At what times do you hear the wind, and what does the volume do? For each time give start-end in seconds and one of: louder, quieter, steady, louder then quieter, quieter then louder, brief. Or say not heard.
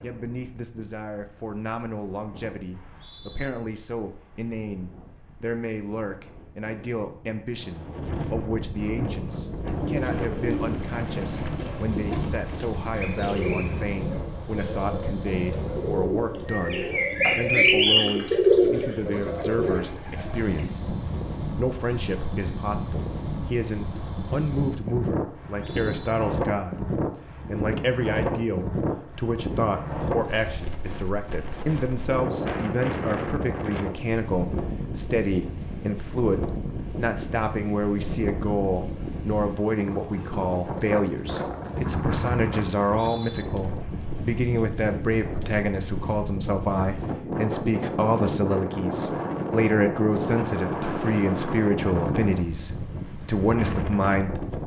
0.0-54.6 louder.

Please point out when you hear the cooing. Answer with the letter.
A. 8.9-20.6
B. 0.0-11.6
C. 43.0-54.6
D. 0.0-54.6
A.